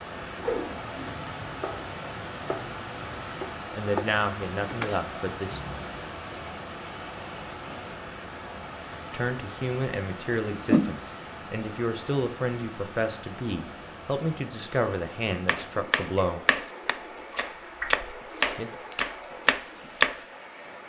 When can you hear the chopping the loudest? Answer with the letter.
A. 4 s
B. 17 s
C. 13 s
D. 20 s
D.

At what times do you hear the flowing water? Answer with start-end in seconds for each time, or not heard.
0.0-20.8.